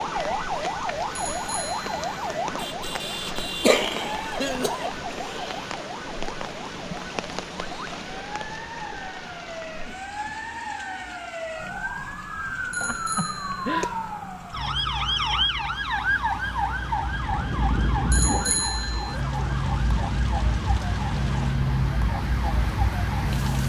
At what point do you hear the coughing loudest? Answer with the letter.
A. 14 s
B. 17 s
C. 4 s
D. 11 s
C.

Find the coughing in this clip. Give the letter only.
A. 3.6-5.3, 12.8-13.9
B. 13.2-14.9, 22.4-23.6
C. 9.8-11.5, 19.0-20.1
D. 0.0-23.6
A.